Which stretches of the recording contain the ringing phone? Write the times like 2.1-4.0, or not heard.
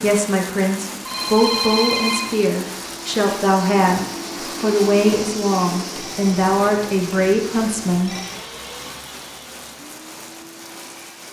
1.1-2.2, 6.0-8.3.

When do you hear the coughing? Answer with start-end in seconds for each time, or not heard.
not heard.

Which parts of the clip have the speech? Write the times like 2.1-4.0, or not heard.
0.0-8.2.